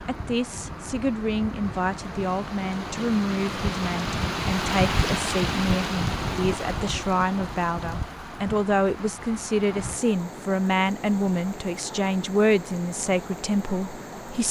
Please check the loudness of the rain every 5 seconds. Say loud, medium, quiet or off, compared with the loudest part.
loud, loud, medium.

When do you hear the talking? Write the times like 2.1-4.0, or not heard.
0.0-14.4.